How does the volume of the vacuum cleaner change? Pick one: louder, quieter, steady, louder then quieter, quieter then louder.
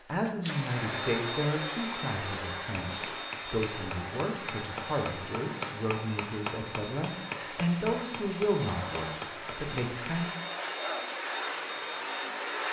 quieter then louder.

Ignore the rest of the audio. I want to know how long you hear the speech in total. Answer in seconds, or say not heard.
10 s.